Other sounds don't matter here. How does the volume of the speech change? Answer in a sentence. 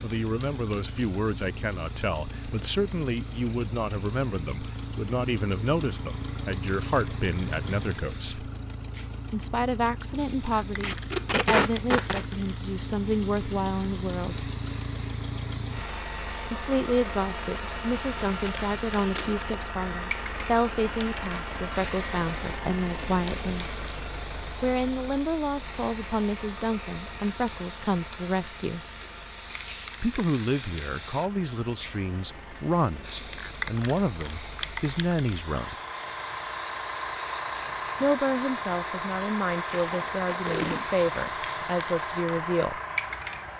The volume of the speech stays about the same.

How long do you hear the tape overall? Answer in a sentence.
You can hear the tape for 4 seconds altogether.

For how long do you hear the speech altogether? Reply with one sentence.
You can hear the speech for 36 seconds altogether.